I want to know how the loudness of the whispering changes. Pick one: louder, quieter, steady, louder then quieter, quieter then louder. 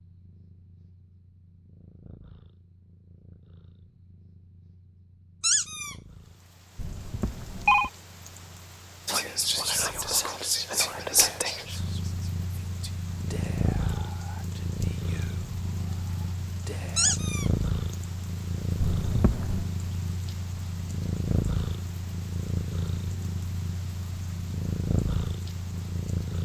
quieter.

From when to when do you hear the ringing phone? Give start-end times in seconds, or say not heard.
6.8-7.9, 18.8-19.6.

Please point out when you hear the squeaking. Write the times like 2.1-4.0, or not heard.
5.4-6.0, 16.9-17.5.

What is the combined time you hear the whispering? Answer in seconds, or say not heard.
8 s.